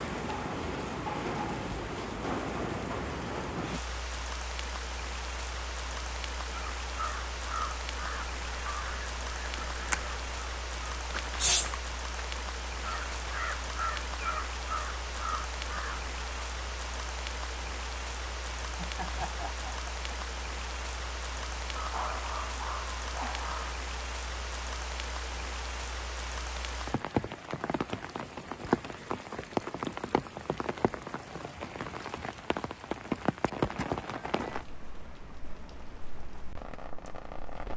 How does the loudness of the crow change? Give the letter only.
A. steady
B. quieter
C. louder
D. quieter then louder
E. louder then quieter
E.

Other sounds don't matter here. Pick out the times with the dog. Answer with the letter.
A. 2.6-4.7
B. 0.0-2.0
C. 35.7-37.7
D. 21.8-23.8
D.